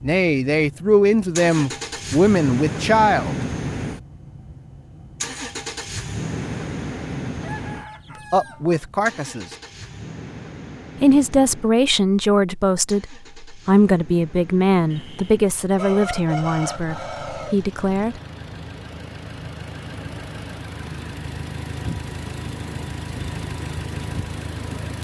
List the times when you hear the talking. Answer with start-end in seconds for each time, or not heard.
0.0-3.4, 8.1-9.4, 11.0-18.2.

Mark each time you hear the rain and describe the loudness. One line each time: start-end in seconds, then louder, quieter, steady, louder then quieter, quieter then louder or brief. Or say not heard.
not heard.